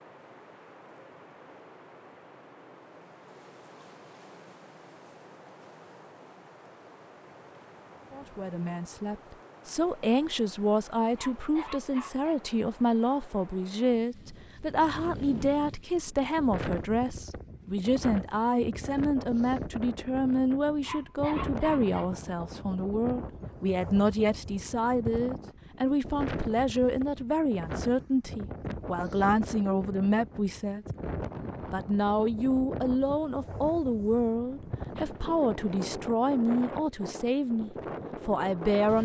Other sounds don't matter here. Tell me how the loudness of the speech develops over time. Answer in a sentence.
The loudness of the speech stays about the same.